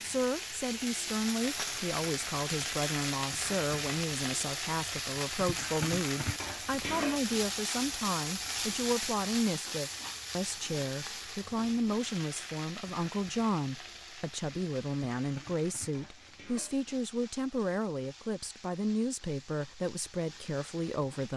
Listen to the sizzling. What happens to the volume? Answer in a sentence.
The loudness of the sizzling goes down.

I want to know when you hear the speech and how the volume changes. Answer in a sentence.
You can hear the speech from 0.0 to 21.3 s, at a steady volume.